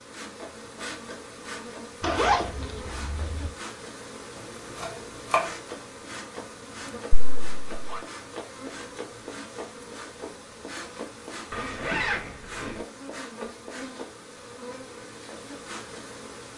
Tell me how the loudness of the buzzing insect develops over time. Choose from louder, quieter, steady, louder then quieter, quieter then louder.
steady.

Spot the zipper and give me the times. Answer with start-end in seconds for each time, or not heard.
2.0-3.5, 7.1-8.0, 11.5-12.8.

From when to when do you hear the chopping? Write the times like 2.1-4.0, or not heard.
4.3-5.5.